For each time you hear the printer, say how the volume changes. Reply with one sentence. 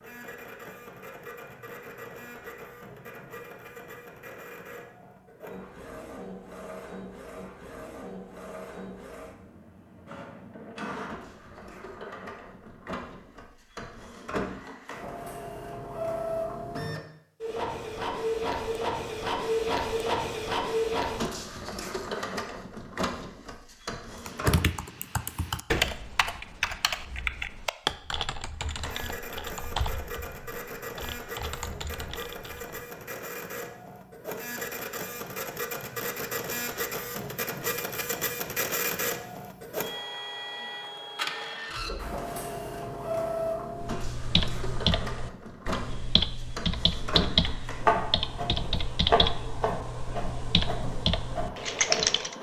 You can hear the printer from 0.0 to 24.6 s, getting louder; and from 28.6 to 52.3 s, getting louder.